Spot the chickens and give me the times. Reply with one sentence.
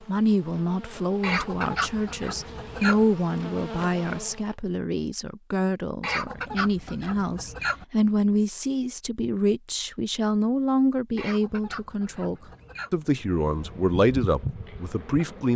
The chickens can be heard from 1.2 to 3.0 s, from 6.0 to 7.8 s and from 11.2 to 12.9 s.